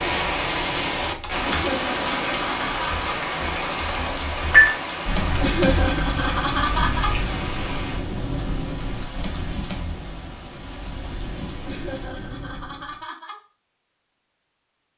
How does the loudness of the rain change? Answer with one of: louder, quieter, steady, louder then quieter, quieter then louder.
quieter.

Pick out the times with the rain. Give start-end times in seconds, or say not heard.
0.0-12.3.